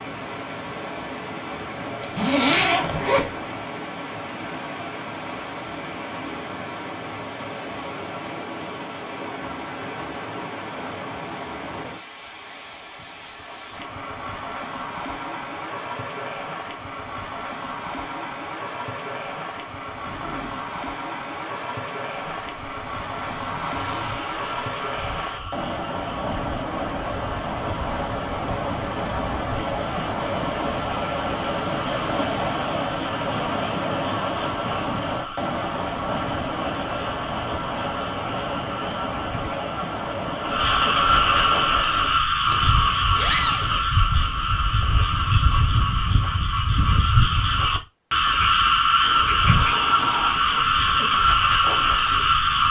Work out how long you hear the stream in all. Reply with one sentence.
The stream can be heard for 42 seconds in total.